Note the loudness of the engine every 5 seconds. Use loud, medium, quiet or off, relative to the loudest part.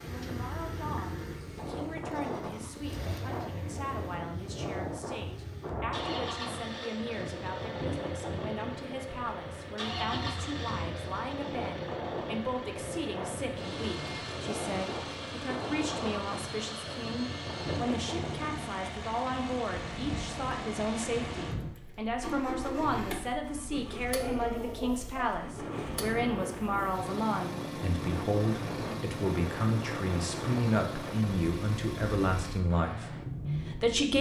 medium, loud, loud, loud, loud, loud, loud.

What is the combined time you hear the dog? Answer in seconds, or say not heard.
2 s.